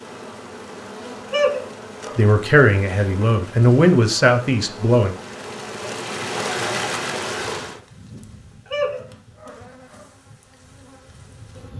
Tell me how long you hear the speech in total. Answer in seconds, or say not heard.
3 s.